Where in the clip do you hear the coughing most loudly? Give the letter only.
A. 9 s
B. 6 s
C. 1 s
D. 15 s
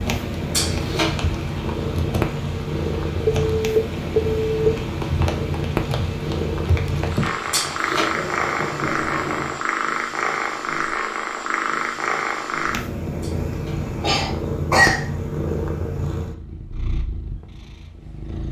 D.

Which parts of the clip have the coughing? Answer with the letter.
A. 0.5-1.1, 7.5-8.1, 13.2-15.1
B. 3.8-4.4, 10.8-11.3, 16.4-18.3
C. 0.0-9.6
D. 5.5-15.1
A.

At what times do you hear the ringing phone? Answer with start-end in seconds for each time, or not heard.
3.2-4.7.